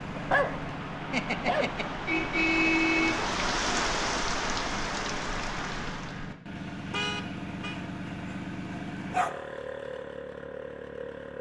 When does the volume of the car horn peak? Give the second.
3 s.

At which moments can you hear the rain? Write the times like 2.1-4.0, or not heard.
0.0-6.3.